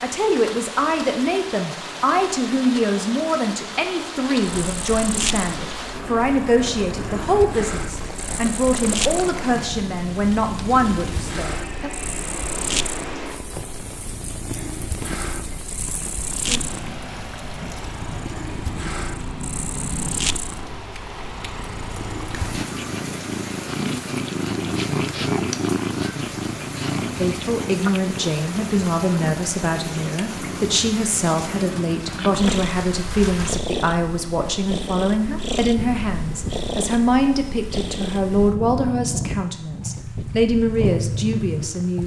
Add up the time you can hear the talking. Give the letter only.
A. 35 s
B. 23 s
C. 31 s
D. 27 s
D.